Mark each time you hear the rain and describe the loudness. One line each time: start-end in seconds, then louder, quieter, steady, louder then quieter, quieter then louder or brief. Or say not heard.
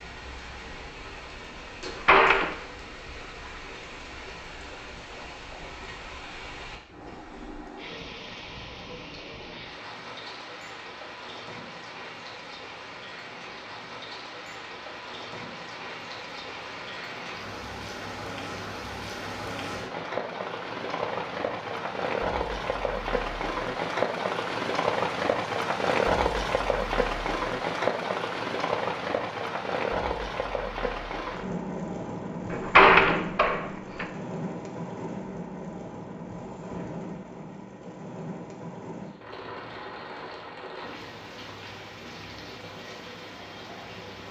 0.0-44.2 louder then quieter.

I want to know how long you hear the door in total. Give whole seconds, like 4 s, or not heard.
2 s.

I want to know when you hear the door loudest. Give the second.
33 s.